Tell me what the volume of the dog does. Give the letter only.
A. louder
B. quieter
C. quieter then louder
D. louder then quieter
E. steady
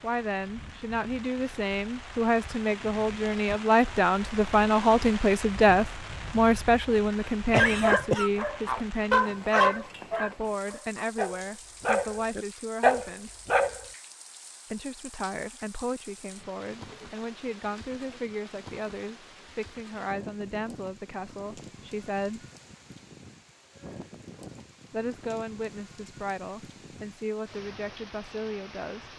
C.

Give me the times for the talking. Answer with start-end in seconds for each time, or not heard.
0.0-13.3, 14.7-22.4, 24.9-29.1.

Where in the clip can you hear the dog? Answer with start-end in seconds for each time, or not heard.
7.8-13.8.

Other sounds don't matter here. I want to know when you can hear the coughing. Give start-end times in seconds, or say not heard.
7.5-8.3.